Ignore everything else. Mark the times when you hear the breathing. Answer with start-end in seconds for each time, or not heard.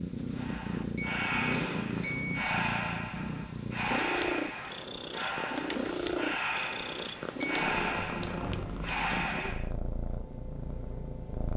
0.3-9.7.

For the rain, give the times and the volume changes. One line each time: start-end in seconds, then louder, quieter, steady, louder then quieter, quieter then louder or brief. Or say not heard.
not heard.